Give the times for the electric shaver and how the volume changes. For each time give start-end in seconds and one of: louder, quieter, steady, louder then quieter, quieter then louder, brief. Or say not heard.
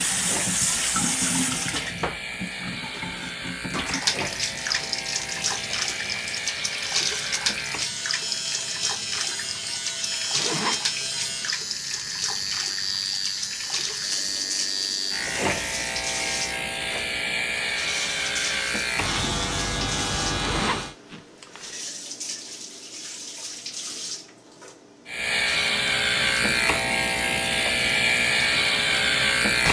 0.0-20.9 louder
25.1-29.6 steady.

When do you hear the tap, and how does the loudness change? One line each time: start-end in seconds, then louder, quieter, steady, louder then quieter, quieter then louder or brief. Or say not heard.
0.0-29.6 quieter.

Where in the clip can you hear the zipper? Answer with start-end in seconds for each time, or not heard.
10.3-10.8, 20.4-21.8.